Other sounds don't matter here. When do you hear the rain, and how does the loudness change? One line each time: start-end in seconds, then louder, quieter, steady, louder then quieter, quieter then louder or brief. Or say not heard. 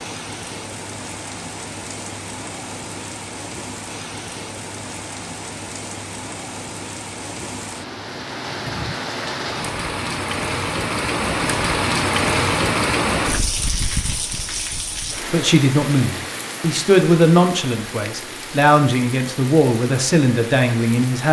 0.0-21.2 louder then quieter.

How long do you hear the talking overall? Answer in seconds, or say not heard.
6 s.